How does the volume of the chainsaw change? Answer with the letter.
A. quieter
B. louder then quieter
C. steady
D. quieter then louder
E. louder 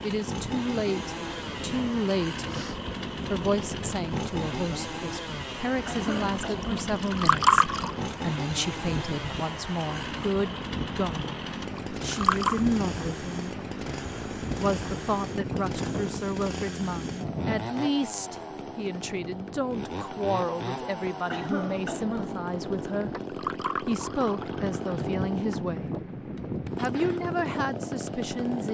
C.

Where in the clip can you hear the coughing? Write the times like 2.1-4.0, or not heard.
5.8-6.9, 21.3-22.4.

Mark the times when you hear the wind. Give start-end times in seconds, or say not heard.
0.0-28.6.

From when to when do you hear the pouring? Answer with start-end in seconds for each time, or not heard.
6.9-7.9, 11.8-12.6, 23.2-25.1.